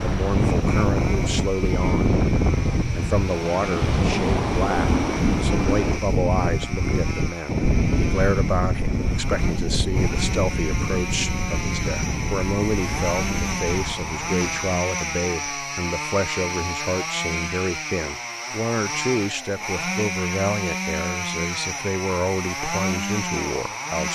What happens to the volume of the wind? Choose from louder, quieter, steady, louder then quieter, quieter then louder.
quieter.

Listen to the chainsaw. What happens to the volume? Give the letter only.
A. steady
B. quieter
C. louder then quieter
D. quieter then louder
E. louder
E.